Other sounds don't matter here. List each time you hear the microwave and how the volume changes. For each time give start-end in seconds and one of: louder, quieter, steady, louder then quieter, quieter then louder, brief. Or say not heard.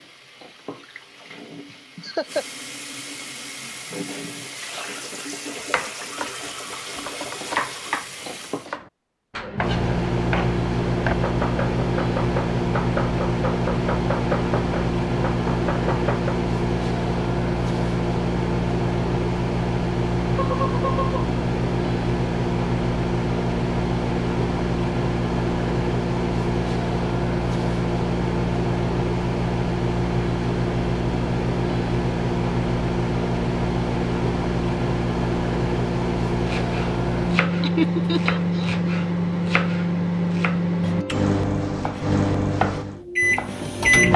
9.6-44.1 steady.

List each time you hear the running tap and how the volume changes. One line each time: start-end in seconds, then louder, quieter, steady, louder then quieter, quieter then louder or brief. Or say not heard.
0.0-8.7 louder.